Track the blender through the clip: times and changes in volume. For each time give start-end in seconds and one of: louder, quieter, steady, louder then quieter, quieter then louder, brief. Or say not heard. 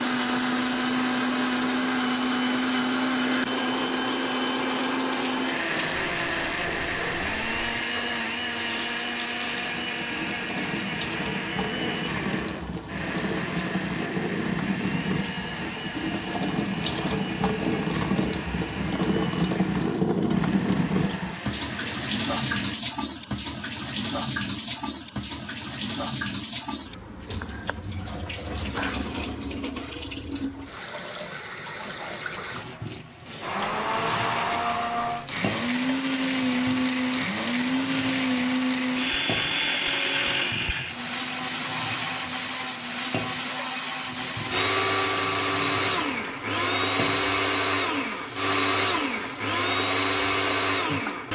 0.0-22.8 quieter
33.2-51.2 steady.